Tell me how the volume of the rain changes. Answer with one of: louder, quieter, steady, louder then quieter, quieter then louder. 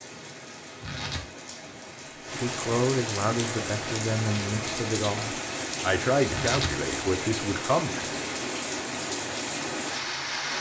louder.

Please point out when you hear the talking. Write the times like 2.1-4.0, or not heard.
2.4-8.2.